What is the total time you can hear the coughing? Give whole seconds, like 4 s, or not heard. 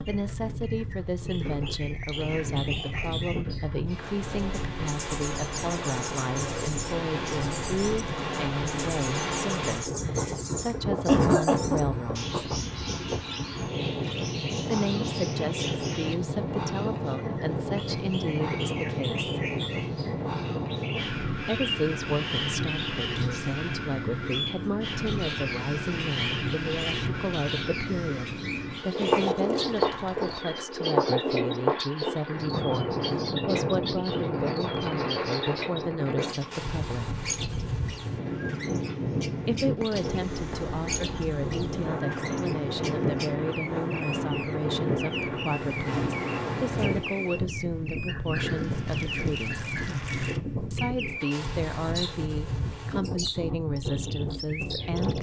2 s.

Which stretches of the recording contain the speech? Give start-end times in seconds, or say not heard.
0.1-12.4, 14.7-19.4, 21.4-37.2, 39.5-49.6, 50.7-55.1.